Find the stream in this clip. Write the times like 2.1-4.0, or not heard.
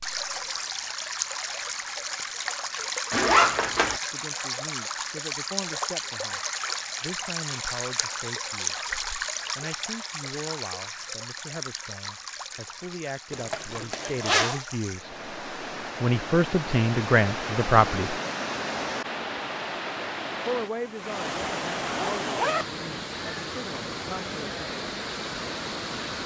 0.0-26.2.